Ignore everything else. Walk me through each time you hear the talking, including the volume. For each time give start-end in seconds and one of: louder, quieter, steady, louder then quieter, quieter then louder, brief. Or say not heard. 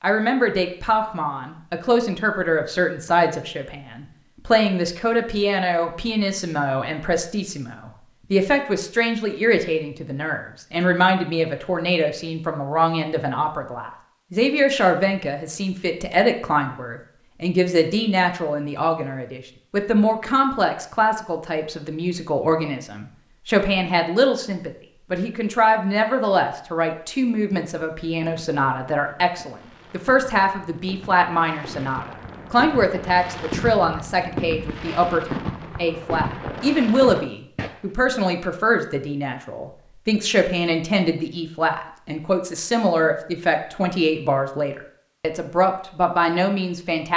0.0-47.1 steady.